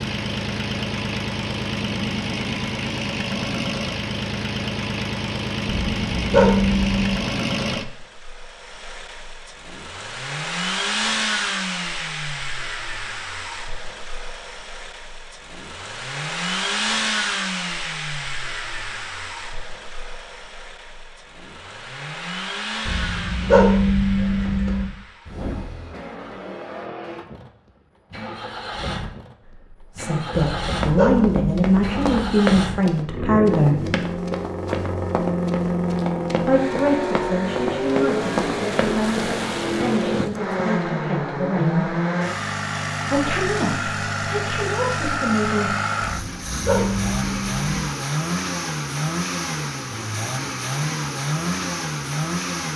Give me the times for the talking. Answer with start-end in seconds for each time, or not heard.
29.8-33.9, 36.5-42.0, 43.0-45.8.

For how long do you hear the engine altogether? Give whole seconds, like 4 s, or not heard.
53 s.